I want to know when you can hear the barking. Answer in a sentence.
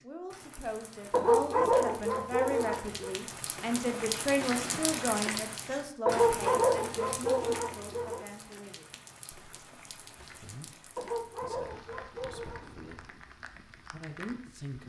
The barking can be heard from 1.1 to 3.1 s, from 6.0 to 8.2 s and from 10.9 to 12.7 s.